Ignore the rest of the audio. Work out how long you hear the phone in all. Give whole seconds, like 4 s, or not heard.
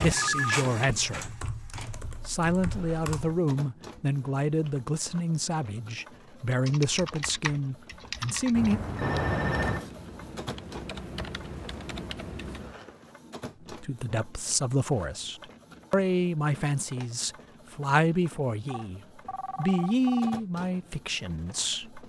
4 s.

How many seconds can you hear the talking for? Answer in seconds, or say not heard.
16 s.